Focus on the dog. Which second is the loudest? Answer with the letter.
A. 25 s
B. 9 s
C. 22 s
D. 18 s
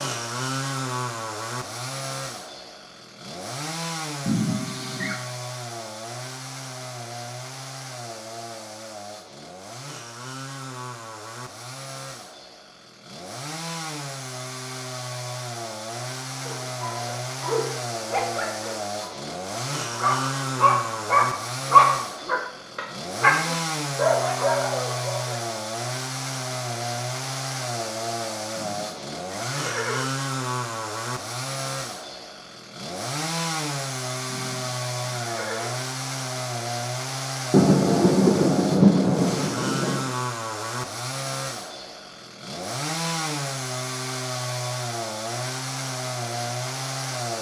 C.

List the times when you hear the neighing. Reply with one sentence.
You can hear the neighing from 4.2 to 5.2 s, from 28.6 to 30.1 s and from 34.2 to 35.8 s.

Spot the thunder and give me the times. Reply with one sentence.
You can hear the thunder from 37.5 to 40.1 s.